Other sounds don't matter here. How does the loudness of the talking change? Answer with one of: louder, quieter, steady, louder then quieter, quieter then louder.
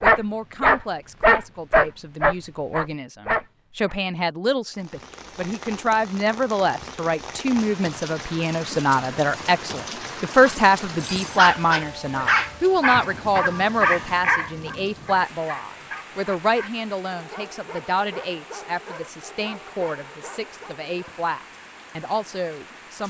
louder then quieter.